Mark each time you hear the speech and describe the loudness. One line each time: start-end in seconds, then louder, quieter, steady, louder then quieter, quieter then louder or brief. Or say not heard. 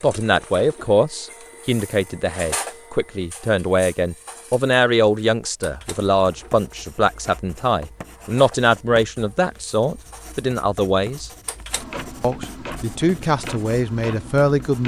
0.0-11.3 steady
12.2-14.8 brief.